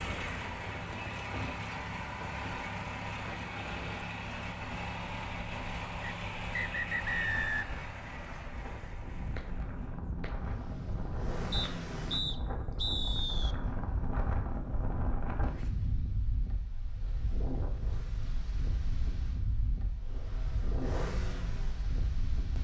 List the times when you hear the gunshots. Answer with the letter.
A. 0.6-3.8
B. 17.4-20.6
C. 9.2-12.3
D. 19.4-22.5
C.